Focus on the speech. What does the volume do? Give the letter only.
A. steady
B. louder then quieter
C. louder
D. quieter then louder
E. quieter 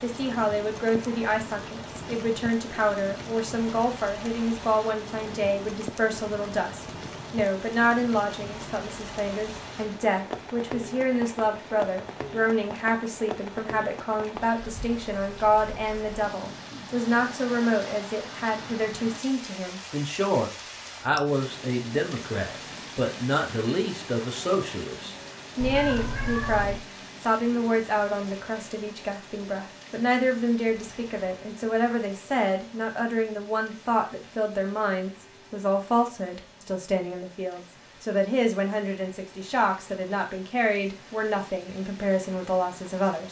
A.